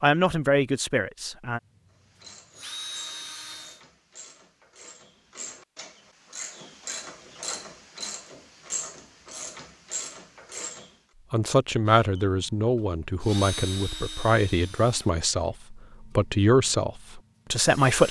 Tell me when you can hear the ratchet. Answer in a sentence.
The ratchet can be heard from 2.0 to 10.9 s.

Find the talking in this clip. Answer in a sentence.
You can hear the talking from 0.0 to 1.6 s and from 11.3 to 18.0 s.